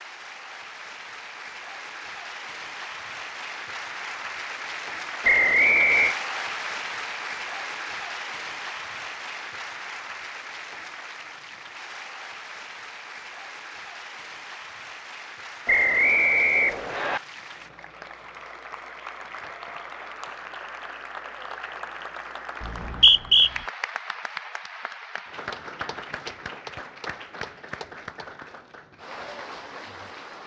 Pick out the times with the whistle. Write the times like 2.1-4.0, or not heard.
5.2-6.2, 15.7-17.2, 22.6-23.5.